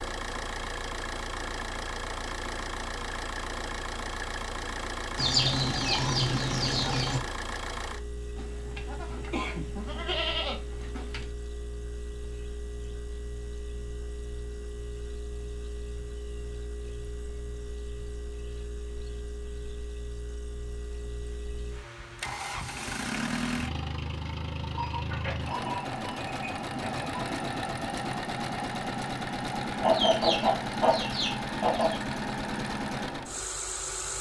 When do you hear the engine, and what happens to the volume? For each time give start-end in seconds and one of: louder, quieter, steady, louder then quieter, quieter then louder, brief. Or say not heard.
0.0-34.1 quieter then louder.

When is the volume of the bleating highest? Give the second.
10 s.